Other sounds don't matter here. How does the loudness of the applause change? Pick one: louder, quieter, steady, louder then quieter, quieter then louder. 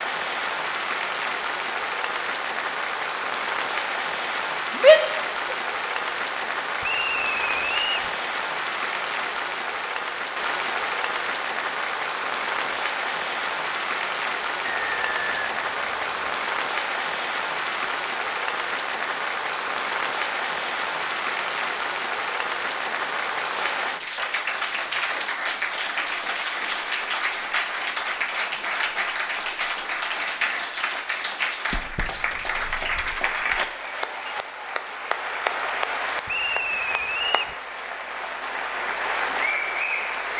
steady.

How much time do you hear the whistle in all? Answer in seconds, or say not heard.
4 s.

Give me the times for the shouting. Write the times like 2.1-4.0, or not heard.
4.8-5.5.